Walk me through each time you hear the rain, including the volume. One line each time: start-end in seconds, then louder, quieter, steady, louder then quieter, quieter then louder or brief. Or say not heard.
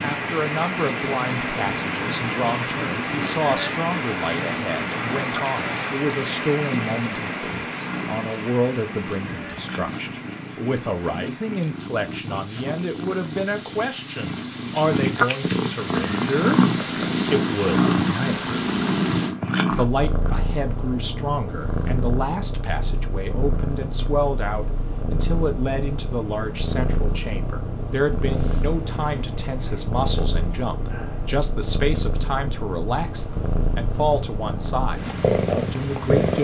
0.0-19.4 quieter then louder.